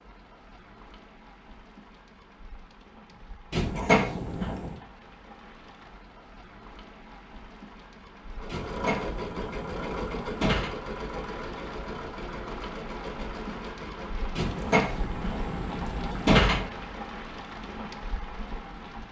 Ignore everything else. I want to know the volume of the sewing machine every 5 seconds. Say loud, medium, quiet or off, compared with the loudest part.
off, loud, loud, off.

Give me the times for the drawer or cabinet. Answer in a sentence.
You can hear the drawer or cabinet from 3.5 to 4.8 s, from 8.4 to 10.8 s and from 14.3 to 16.7 s.